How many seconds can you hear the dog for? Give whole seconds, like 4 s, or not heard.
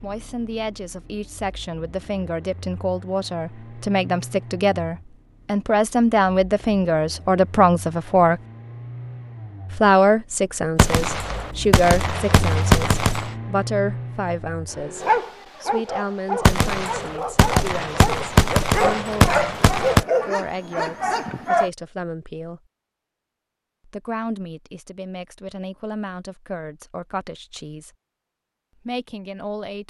7 s.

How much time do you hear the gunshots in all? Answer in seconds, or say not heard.
6 s.